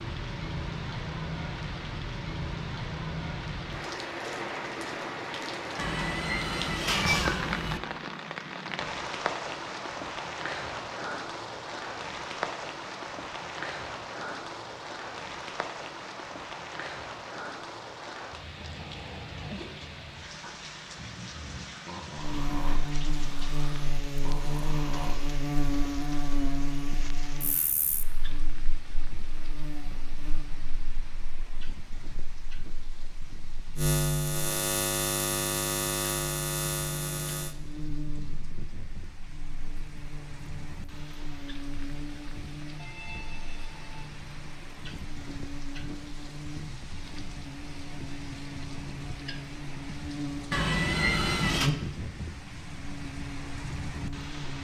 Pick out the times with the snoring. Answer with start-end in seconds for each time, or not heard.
18.4-25.4.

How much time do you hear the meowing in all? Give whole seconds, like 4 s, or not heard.
3 s.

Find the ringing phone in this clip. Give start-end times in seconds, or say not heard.
42.8-44.1.